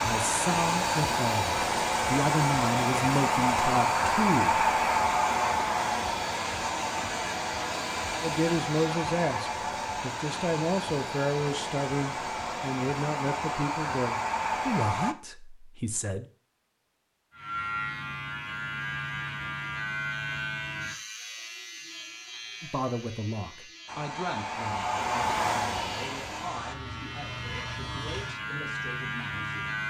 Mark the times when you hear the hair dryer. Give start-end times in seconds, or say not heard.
0.0-15.2, 23.9-26.8.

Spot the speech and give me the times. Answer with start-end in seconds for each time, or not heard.
0.0-4.7, 8.2-16.2, 22.6-29.8.